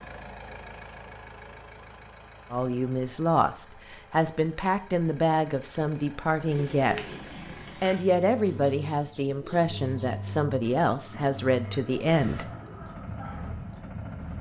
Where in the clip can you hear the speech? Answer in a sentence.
You can hear the speech from 2.5 to 7.2 s and from 7.8 to 12.5 s.